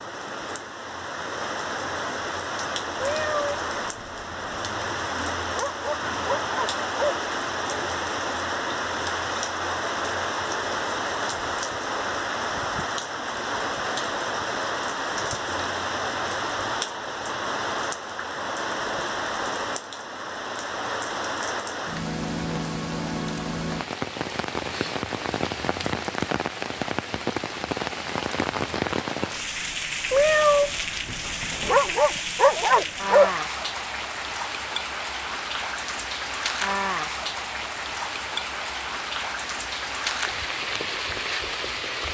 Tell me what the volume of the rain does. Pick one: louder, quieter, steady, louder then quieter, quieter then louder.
steady.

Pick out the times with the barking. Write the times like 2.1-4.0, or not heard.
5.5-7.2, 31.6-33.3.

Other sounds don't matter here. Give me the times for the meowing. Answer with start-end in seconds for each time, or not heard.
3.0-4.7, 30.1-31.9.